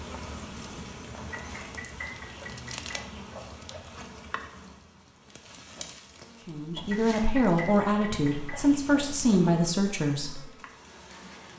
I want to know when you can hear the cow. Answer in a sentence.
You can't hear the cow here.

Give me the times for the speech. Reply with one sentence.
The speech can be heard from 6.5 to 10.4 s.